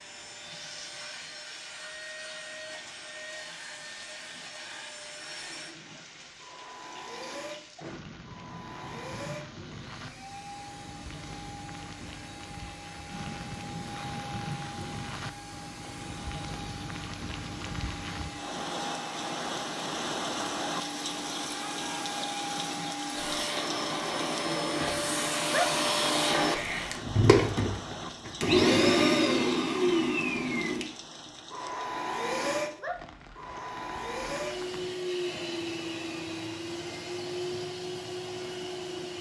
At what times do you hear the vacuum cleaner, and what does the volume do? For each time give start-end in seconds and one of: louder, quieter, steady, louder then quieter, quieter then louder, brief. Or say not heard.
0.0-39.1 louder then quieter.